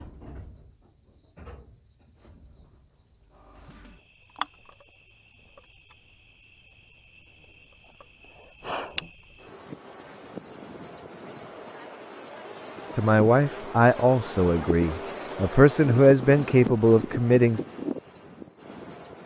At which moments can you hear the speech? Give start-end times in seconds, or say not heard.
12.9-17.6.